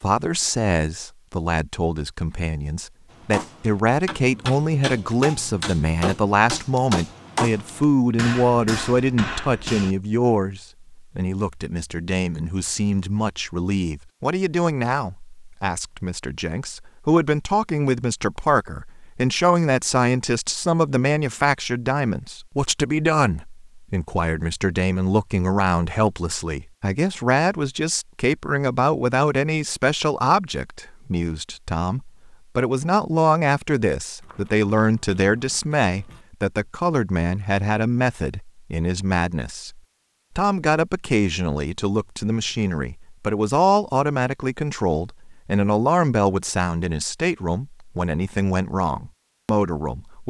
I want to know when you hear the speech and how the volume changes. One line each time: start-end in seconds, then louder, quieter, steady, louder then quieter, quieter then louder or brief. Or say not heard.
0.0-50.2 steady.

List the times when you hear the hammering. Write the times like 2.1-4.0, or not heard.
3.1-9.9.